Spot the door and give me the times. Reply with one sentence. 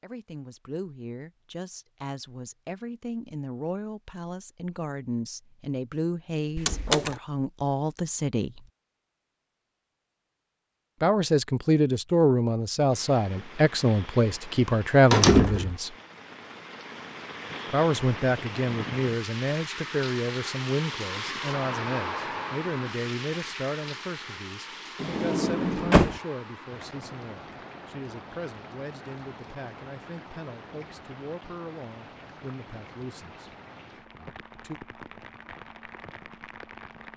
The door can be heard from 6.5 to 7.2 s, from 15.1 to 15.8 s and from 25.0 to 26.1 s.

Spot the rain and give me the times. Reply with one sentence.
You can hear the rain from 12.9 to 37.1 s.